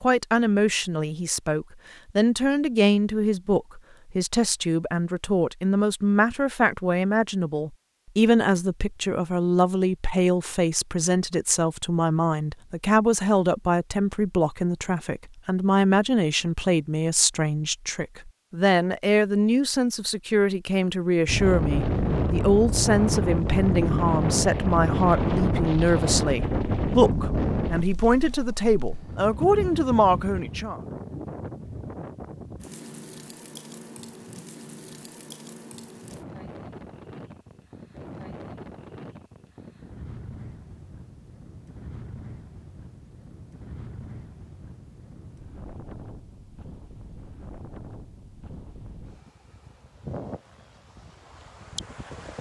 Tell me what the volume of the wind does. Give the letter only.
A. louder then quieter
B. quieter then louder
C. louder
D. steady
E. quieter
E.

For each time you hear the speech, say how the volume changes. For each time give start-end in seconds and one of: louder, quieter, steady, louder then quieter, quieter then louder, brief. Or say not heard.
0.0-30.8 steady.